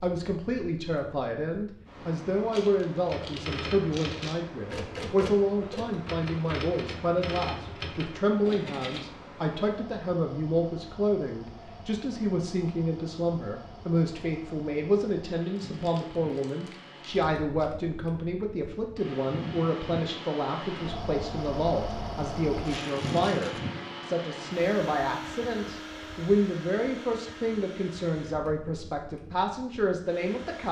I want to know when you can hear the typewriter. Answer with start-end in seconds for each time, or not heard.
3.0-9.1.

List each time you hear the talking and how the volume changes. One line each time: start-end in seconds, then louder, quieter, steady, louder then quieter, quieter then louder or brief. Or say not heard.
0.0-30.6 steady.